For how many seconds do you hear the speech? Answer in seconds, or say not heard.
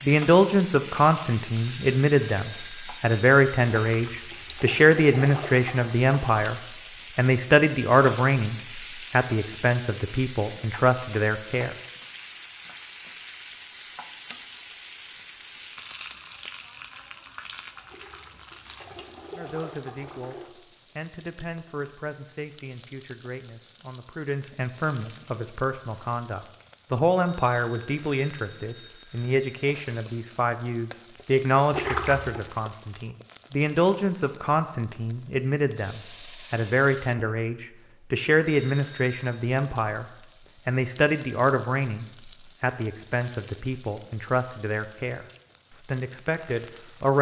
38 s.